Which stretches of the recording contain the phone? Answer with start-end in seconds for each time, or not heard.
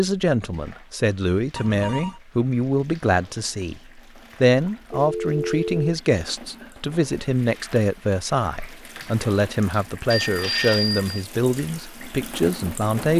1.6-2.2, 4.8-5.8, 10.1-11.2.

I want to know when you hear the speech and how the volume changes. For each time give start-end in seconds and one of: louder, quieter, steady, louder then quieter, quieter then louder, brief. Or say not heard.
0.0-13.1 steady.